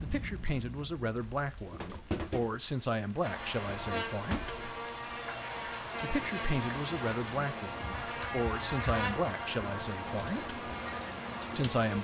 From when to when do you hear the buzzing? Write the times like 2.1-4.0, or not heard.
3.2-12.0.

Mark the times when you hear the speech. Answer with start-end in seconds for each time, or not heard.
0.0-4.5, 6.0-10.5, 11.6-12.0.